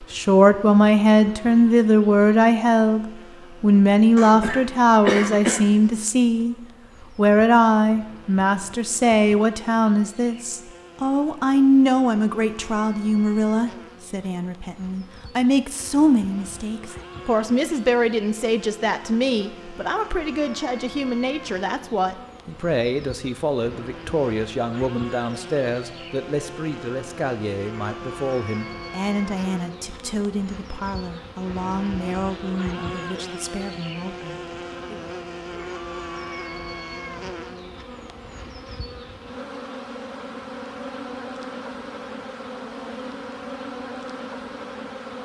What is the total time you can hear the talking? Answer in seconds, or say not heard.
34 s.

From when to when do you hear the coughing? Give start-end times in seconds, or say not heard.
4.2-5.7.